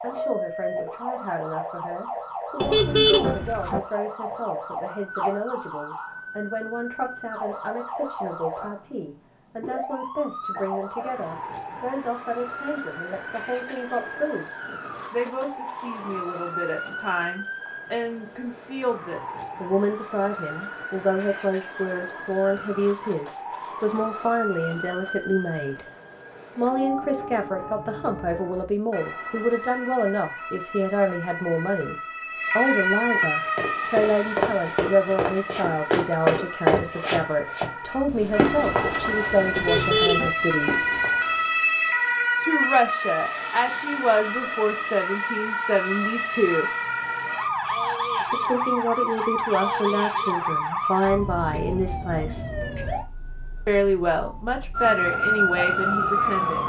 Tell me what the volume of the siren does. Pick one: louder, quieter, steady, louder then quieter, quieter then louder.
louder.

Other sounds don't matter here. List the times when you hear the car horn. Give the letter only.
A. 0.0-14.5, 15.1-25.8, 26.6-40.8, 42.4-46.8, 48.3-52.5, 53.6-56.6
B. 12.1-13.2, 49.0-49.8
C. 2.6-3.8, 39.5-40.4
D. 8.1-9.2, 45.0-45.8
C.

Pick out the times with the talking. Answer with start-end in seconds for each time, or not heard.
0.0-14.5, 15.1-25.8, 26.6-40.8, 42.4-46.8, 48.3-52.5, 53.6-56.6.